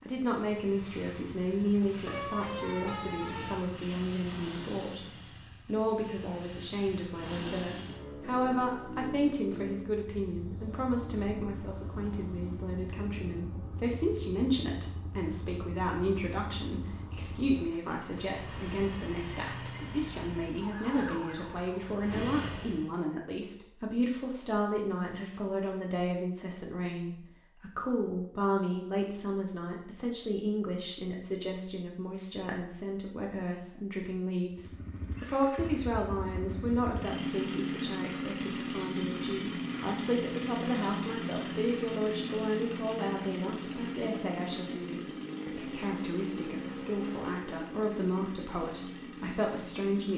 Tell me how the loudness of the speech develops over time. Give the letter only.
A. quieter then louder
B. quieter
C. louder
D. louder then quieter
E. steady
E.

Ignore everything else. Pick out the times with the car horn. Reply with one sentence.
The car horn can be heard from 2.0 to 3.6 s.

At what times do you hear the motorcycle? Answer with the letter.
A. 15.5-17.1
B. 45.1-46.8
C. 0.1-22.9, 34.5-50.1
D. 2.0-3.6
C.